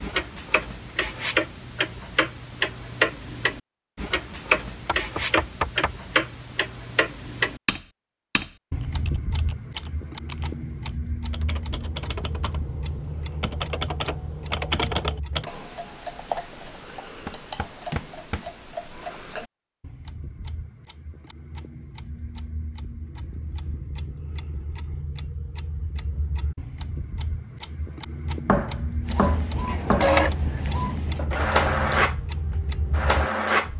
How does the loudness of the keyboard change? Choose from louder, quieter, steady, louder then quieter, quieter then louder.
louder.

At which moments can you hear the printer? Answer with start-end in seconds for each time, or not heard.
29.1-33.7.